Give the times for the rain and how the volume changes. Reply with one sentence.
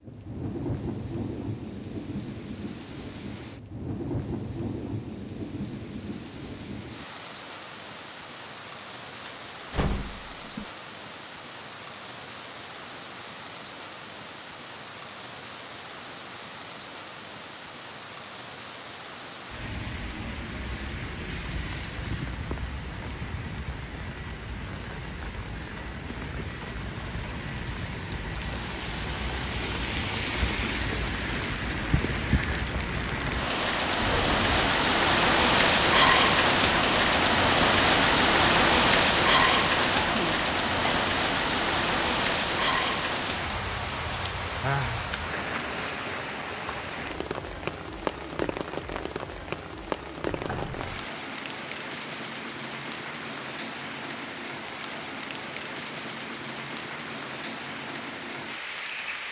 You can hear the rain from 0.0 to 59.2 s, getting louder then quieter.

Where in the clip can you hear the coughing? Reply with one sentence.
You can hear the coughing from 39.8 to 41.1 s.